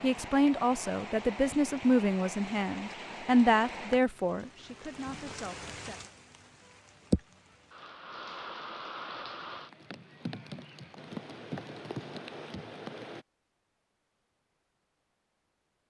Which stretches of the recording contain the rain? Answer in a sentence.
You can hear the rain from 0.0 to 13.2 s.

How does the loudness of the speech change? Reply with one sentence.
The loudness of the speech goes down.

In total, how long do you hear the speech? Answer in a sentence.
You can hear the speech for 6 seconds altogether.